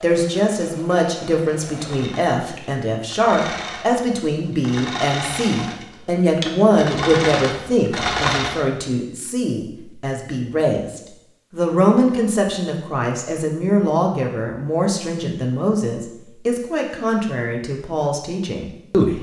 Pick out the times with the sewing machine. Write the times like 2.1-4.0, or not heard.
0.0-8.6.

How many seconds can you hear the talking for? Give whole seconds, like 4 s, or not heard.
19 s.